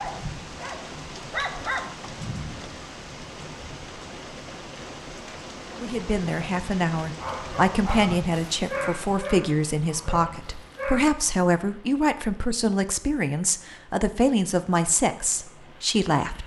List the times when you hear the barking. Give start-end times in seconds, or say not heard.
0.0-1.9, 7.2-11.1.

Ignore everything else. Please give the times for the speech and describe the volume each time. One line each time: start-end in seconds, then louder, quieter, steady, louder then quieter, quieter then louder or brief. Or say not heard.
5.7-16.4 steady.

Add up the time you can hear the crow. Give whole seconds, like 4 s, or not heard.
not heard.